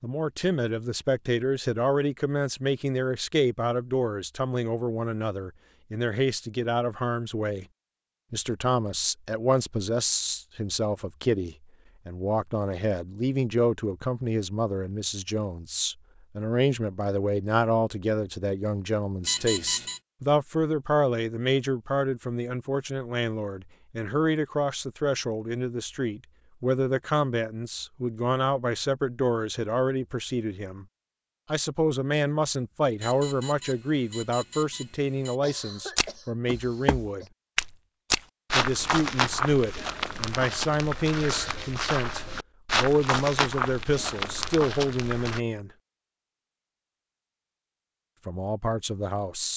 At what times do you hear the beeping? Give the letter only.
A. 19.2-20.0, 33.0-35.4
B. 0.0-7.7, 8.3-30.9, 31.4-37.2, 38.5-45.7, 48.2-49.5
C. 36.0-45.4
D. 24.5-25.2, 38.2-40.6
A.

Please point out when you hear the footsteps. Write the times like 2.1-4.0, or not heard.
36.0-45.4.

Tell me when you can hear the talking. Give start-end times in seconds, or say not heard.
0.0-7.7, 8.3-30.9, 31.4-37.2, 38.5-45.7, 48.2-49.5.